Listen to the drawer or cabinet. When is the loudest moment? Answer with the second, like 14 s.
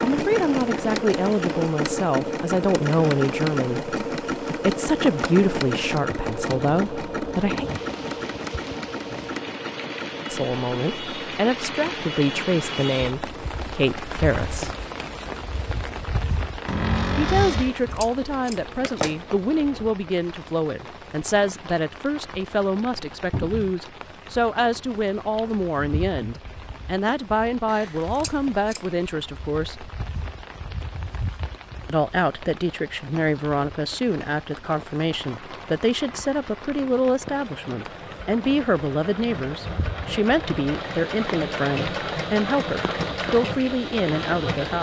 17 s.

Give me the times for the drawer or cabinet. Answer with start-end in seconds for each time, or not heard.
16.6-17.8, 23.3-23.8.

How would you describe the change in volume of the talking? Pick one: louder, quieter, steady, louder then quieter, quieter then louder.
steady.